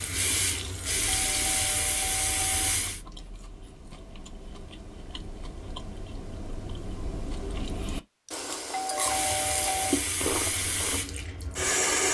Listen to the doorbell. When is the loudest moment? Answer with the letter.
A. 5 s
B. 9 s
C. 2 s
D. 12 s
B.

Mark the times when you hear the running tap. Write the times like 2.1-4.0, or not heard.
0.0-3.0, 8.9-12.1.